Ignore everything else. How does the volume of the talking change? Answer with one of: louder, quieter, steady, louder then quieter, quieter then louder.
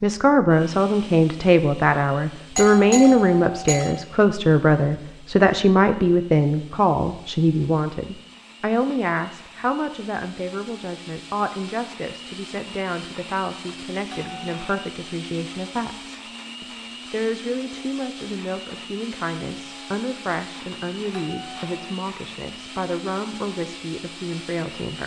quieter.